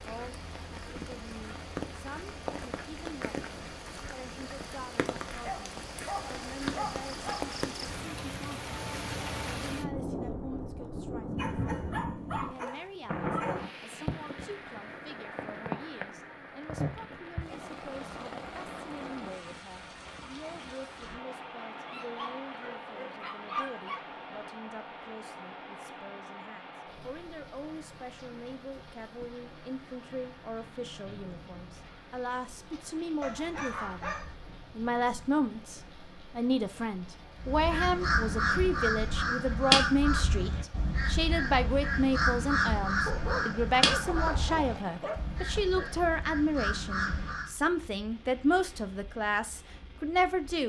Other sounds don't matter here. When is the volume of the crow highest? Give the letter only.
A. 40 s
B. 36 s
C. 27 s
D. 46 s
A.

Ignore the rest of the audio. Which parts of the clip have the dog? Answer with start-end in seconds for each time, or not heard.
5.1-7.7, 11.3-13.7, 21.9-24.1, 33.2-34.4, 43.0-45.9.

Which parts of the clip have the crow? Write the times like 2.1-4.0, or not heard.
37.4-47.5.